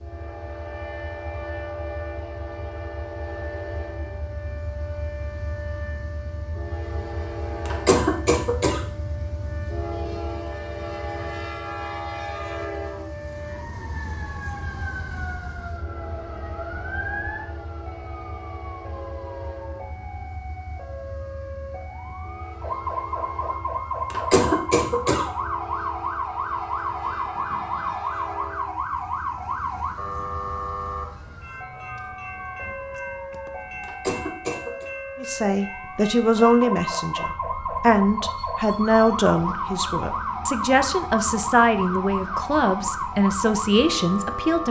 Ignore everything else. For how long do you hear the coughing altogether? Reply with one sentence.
The coughing can be heard for 3 seconds in total.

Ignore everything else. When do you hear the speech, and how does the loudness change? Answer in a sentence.
You can hear the speech from 35.1 to 44.6 s, at a steady volume.